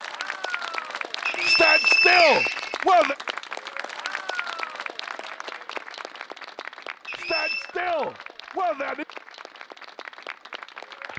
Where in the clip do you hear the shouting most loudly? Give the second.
2 s.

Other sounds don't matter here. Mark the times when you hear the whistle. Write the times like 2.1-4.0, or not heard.
1.2-2.8, 7.0-7.8.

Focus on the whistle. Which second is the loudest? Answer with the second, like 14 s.
2 s.